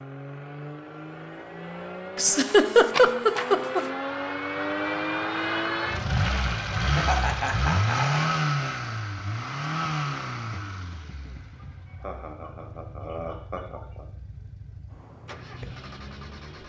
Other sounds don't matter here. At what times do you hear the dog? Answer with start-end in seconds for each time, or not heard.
not heard.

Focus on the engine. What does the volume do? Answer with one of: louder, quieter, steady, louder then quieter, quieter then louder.
louder then quieter.